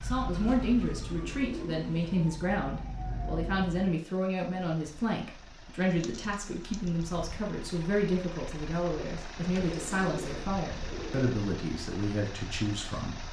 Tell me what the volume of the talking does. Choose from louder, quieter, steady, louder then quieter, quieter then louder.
steady.